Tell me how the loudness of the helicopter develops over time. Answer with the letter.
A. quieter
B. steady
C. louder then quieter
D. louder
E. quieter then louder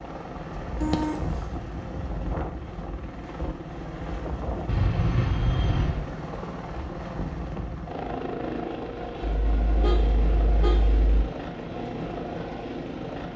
B.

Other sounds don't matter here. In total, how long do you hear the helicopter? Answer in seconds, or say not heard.
13 s.